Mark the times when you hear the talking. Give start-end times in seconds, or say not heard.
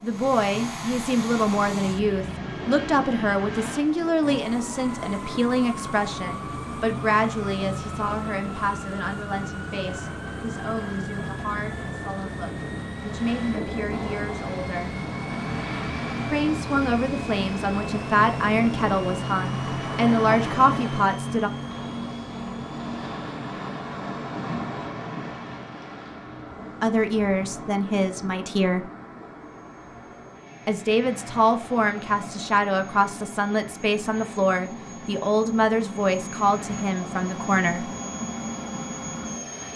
0.0-15.1, 16.2-21.5, 26.8-28.9, 30.6-37.9.